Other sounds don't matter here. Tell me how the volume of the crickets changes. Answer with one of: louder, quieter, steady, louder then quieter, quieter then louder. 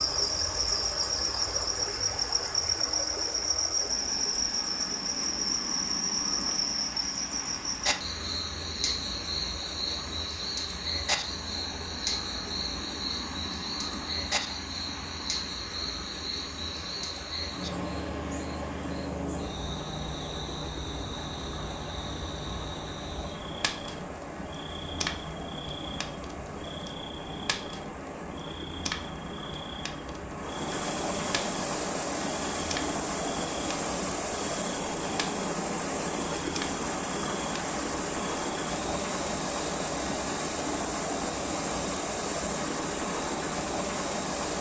quieter.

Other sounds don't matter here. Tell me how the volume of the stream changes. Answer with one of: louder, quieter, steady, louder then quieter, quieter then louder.
louder.